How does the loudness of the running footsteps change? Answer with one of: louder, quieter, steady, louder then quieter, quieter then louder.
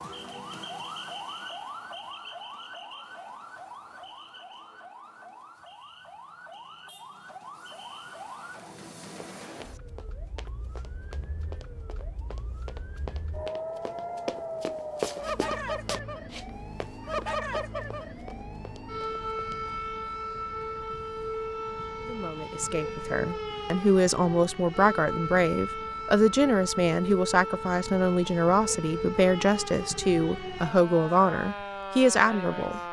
louder then quieter.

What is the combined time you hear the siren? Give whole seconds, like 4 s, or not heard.
33 s.